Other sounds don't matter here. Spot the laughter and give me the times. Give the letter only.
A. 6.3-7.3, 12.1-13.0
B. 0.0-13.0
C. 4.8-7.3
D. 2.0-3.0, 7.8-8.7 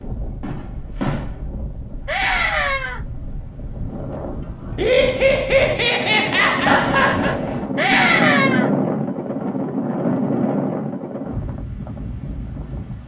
C.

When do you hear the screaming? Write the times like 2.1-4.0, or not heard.
2.0-3.0, 7.8-8.7.